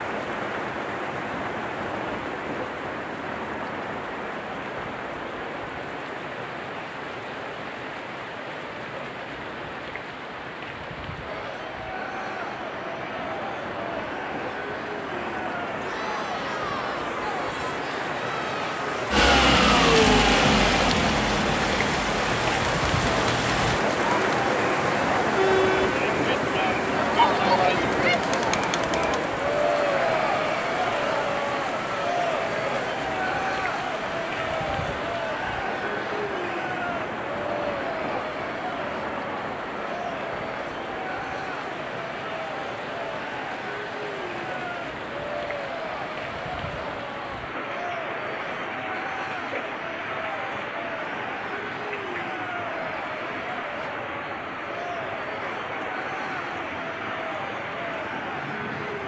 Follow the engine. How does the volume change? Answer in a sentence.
The volume of the engine goes down.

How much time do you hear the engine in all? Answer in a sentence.
The engine can be heard for 5 seconds in total.